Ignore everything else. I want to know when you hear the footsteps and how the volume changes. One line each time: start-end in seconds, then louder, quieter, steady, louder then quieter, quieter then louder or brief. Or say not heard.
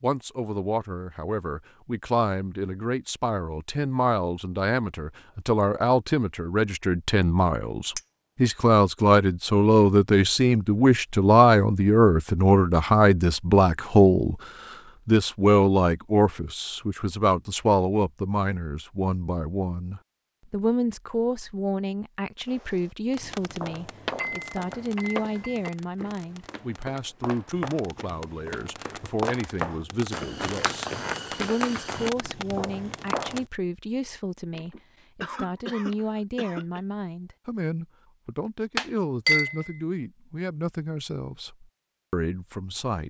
23.4-33.5 louder.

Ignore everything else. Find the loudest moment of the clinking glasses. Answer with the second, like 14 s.
39 s.